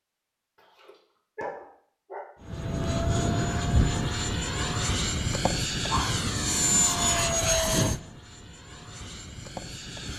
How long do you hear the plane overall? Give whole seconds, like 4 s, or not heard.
8 s.